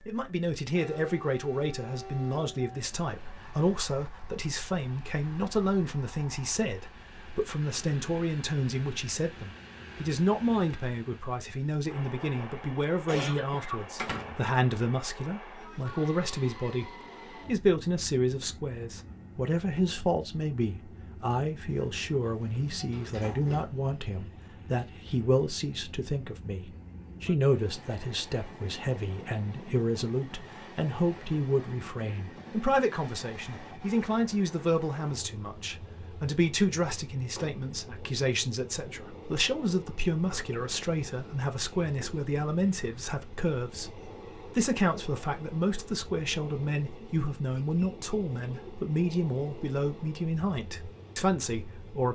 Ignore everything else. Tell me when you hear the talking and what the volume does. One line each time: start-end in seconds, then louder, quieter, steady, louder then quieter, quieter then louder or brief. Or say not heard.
0.1-52.1 steady.